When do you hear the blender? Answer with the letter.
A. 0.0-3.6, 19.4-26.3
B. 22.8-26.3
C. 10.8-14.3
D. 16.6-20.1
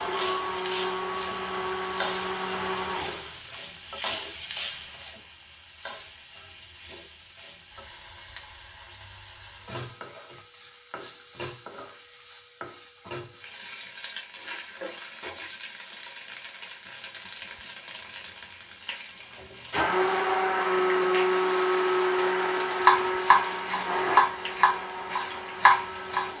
A.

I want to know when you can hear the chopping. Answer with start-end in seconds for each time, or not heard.
22.8-26.3.